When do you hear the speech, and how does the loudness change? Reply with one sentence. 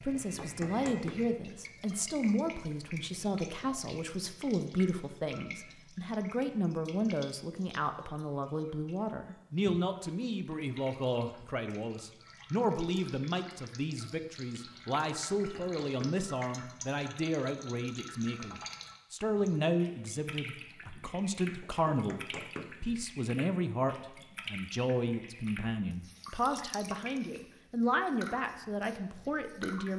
The speech can be heard from 0.0 to 29.9 s, at a steady volume.